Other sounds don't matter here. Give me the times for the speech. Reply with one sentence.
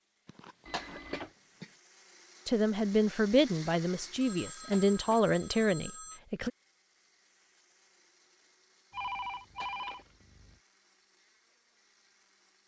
You can hear the speech from 2.5 to 6.5 s.